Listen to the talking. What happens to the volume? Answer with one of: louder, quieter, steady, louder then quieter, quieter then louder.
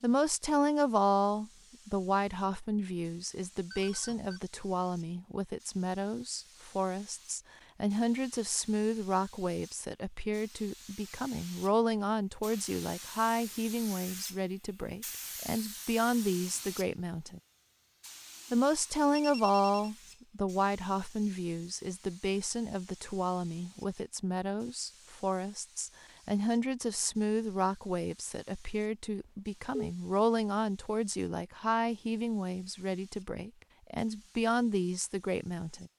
steady.